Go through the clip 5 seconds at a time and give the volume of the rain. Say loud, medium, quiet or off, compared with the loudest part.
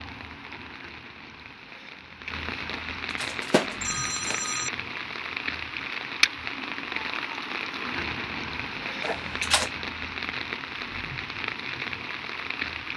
medium, loud, loud.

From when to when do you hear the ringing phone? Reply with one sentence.
You can hear the ringing phone from 2.8 to 4.7 s and from 9.0 to 9.7 s.